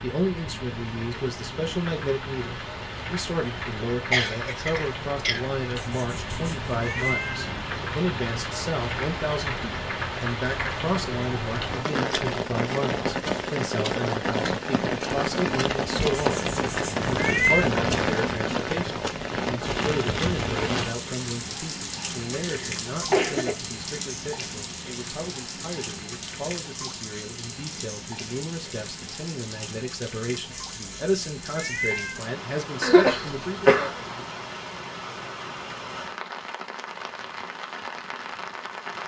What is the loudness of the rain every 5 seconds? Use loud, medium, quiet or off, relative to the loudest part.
medium, medium, loud, loud, medium, medium, medium, medium.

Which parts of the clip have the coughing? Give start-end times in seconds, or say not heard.
4.1-5.5, 22.4-23.6, 32.8-33.9.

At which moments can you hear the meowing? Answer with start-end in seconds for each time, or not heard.
5.8-7.6, 16.1-17.7, 30.5-32.2.